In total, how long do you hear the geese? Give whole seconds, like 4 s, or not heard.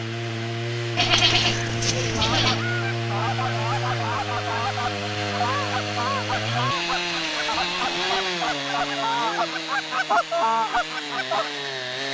9 s.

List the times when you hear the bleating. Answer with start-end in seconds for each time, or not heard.
0.9-2.6, 6.5-8.4.